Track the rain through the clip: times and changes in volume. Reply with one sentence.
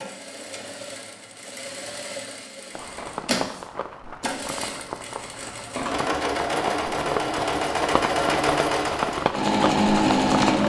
You can hear the rain from 2.8 to 10.6 s, getting louder.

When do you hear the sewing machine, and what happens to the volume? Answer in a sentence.
The sewing machine can be heard from 0.0 to 10.6 s, getting louder.